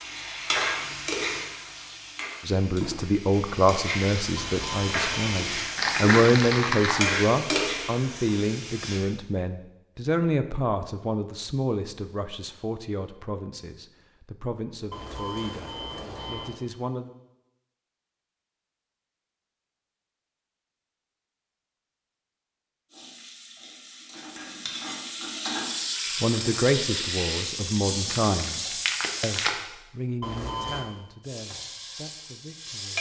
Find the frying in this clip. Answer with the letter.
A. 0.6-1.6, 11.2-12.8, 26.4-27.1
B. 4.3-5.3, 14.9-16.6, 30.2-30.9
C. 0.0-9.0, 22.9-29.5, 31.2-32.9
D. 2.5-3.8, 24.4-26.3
C.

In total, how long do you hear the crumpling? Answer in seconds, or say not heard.
3 s.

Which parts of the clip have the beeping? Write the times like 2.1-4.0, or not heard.
4.3-5.3, 14.9-16.6, 30.2-30.9.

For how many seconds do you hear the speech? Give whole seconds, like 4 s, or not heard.
21 s.